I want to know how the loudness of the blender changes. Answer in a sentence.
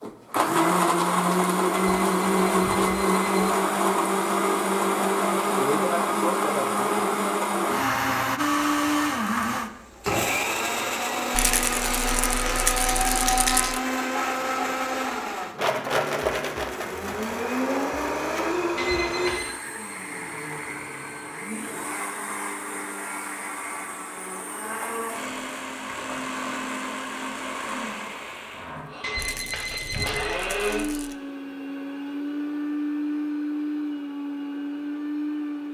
The volume of the blender goes down.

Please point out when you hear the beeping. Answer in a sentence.
The beeping can be heard from 1.7 to 3.5 s, from 18.8 to 19.6 s and from 29.0 to 30.4 s.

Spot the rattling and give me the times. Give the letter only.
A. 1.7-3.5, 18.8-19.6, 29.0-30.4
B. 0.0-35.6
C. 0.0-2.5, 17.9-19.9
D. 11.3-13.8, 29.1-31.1
D.